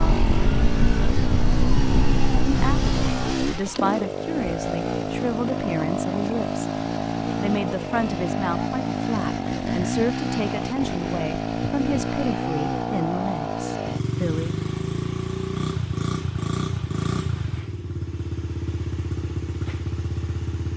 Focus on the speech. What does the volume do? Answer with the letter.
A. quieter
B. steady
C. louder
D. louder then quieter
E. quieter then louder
B.